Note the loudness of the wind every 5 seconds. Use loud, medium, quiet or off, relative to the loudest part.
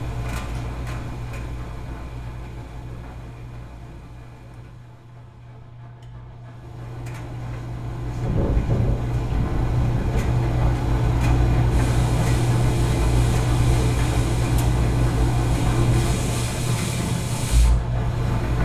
off, loud, medium, loud.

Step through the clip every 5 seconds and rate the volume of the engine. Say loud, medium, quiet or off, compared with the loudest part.
quiet, medium, loud, loud.